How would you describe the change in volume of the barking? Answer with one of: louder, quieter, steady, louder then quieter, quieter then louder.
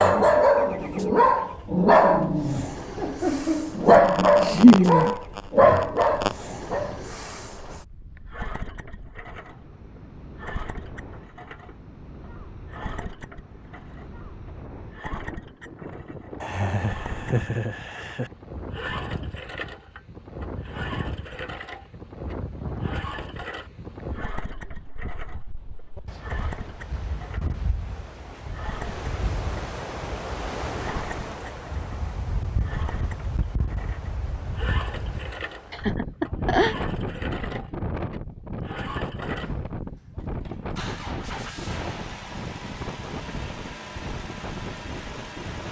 steady.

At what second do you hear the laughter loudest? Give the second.
5 s.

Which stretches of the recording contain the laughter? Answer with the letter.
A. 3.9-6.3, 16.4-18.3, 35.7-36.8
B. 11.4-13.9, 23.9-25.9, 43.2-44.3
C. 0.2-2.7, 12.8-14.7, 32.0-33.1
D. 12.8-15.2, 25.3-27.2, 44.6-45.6
A.